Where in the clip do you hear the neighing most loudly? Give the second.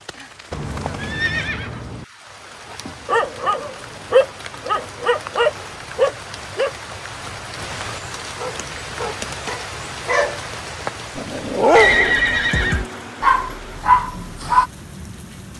12 s.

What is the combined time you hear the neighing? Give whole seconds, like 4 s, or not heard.
3 s.